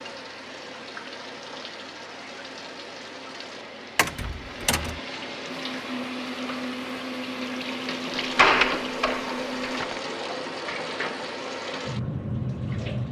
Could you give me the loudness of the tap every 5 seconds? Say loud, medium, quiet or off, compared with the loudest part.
medium, loud, loud.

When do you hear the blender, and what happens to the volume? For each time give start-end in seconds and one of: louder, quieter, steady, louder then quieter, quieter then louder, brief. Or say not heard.
5.5-9.8 steady.